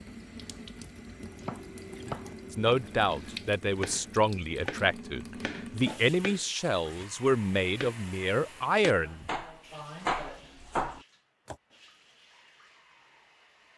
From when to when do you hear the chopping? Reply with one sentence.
You can hear the chopping from 1.1 to 11.6 s.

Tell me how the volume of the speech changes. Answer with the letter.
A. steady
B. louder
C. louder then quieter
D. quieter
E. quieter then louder
A.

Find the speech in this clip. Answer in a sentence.
The speech can be heard from 2.5 to 9.3 s.